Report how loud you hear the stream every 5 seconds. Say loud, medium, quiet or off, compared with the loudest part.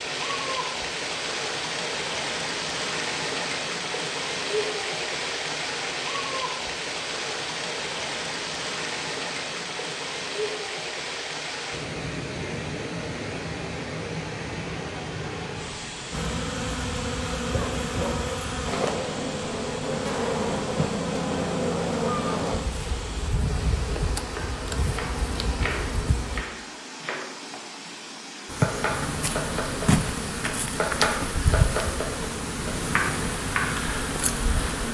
loud, loud, loud, medium, medium, medium, medium.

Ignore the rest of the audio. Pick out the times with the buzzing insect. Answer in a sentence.
You can hear the buzzing insect from 16.1 to 26.4 s and from 28.4 to 34.8 s.